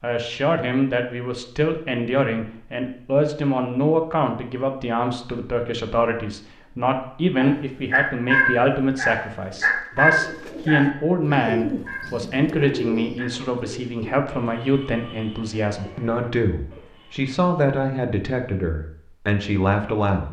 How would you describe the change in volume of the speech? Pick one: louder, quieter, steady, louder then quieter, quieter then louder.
steady.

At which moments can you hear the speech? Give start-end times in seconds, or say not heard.
0.0-20.2.